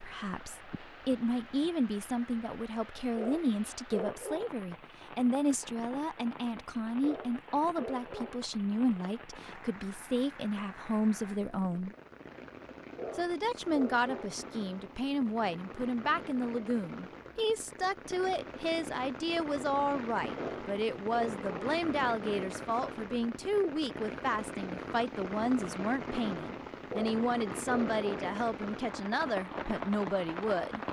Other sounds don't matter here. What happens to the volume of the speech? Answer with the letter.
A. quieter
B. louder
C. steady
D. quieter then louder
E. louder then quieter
C.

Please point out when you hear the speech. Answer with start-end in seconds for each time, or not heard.
0.0-11.9, 13.2-30.8.